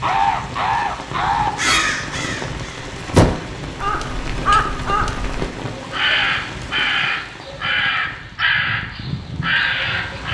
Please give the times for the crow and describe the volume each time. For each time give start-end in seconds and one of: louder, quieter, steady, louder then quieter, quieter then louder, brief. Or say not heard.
0.0-10.2 steady.